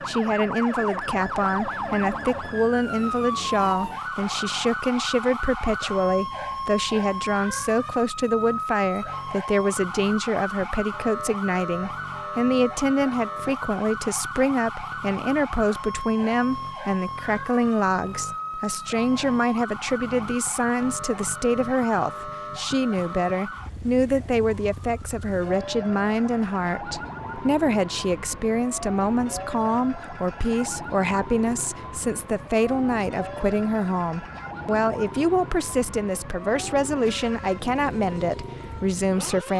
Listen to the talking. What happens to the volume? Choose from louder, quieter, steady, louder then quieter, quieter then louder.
steady.